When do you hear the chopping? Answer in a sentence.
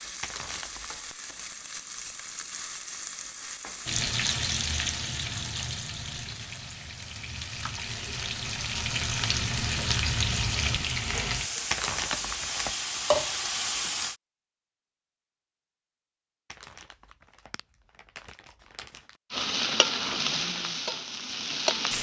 You can't hear the chopping here.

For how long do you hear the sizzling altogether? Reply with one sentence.
The sizzling can be heard for 17 seconds in total.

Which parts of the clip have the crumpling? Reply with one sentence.
You can hear the crumpling from 0.2 to 1.0 s, from 11.7 to 12.8 s and from 16.5 to 19.1 s.